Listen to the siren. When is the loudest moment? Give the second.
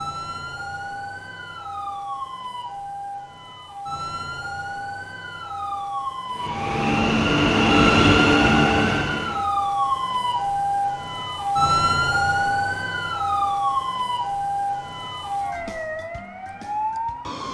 12 s.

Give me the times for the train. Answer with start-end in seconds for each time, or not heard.
6.3-9.5.